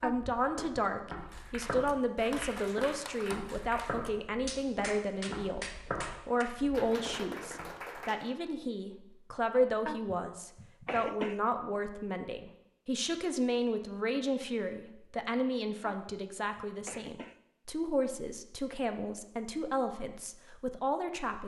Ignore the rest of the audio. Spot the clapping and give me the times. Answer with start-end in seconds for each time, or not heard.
1.3-8.3.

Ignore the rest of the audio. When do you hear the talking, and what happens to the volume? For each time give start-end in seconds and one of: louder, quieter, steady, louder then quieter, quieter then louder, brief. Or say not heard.
0.0-21.4 steady.